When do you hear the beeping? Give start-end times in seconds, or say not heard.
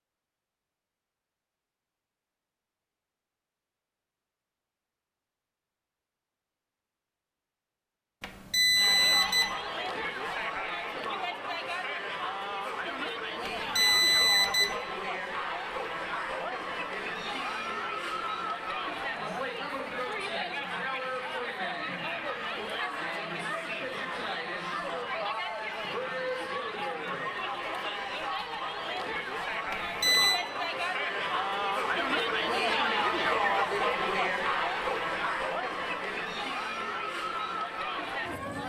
8.2-9.6, 13.4-14.8, 29.7-30.4.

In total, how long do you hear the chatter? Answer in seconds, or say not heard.
30 s.